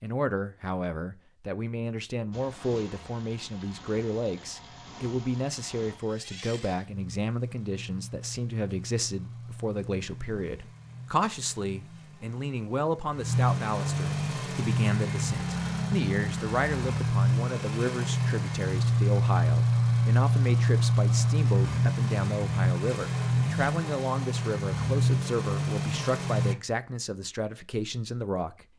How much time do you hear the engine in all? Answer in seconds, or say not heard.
24 s.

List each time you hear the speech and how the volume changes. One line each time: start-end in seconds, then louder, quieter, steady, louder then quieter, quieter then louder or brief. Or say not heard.
0.0-28.6 steady.